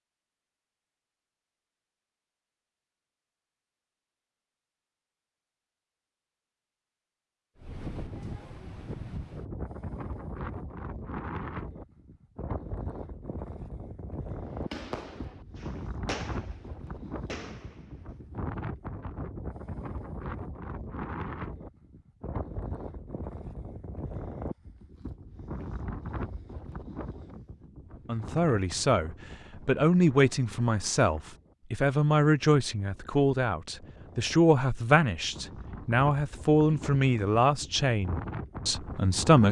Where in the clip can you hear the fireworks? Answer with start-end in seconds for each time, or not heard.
14.5-18.1.